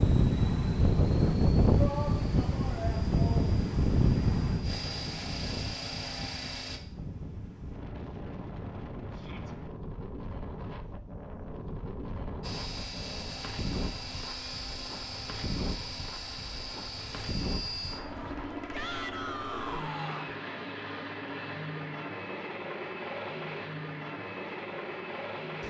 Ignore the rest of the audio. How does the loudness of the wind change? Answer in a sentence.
The loudness of the wind goes down.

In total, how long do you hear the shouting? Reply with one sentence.
The shouting can be heard for 4 seconds in total.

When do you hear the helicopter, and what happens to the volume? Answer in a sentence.
You can hear the helicopter from 0.0 to 6.8 s, getting louder; and from 12.4 to 25.6 s, at a steady volume.